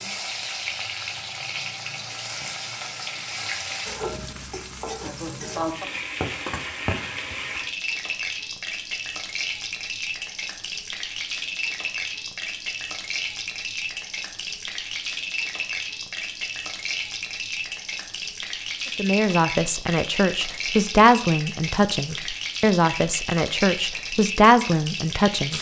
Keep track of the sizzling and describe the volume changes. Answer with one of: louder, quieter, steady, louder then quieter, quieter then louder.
steady.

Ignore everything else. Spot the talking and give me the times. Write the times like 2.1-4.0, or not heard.
18.9-25.5.